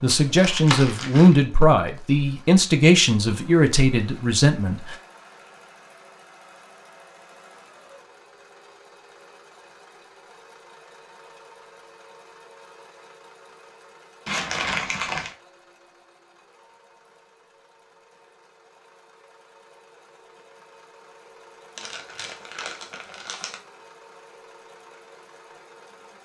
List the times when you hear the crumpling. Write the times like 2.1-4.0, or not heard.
0.2-1.4, 14.2-15.3, 21.8-23.6.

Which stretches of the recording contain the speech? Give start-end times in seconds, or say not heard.
0.0-5.0.